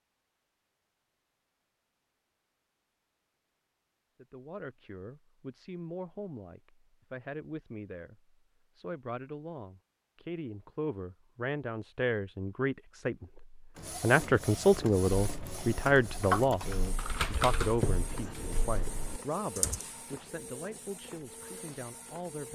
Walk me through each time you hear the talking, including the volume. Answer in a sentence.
The talking can be heard from 4.2 to 22.5 s, getting louder then quieter.